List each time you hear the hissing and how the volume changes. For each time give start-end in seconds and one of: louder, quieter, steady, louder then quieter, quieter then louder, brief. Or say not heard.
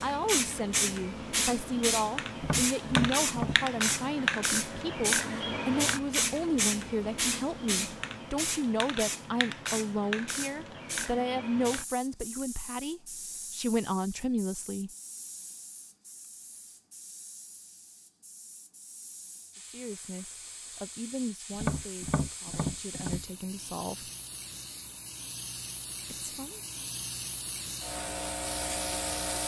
0.0-29.4 quieter then louder.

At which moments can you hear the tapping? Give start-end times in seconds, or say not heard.
2.4-3.6, 21.5-23.2.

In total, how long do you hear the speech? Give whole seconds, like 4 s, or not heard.
20 s.